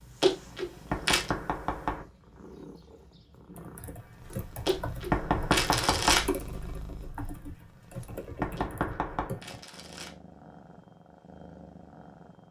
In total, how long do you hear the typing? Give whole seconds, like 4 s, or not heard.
6 s.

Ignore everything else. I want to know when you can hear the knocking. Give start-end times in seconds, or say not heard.
0.9-2.0, 5.1-6.2, 8.4-9.3.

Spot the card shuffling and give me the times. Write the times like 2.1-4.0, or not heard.
0.2-1.3, 4.7-6.2, 8.6-10.2.